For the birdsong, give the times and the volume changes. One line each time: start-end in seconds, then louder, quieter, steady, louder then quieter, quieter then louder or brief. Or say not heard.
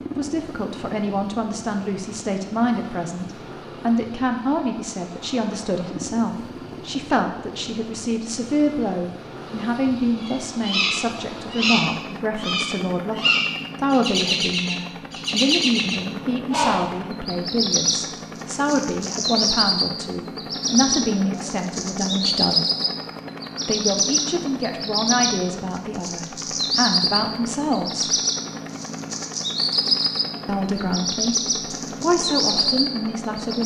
10.2-33.6 steady.